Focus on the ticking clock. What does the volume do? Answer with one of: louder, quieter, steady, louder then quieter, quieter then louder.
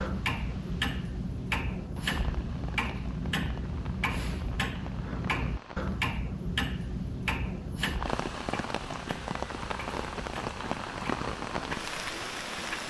quieter.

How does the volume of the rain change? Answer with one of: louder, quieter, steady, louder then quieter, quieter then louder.
louder.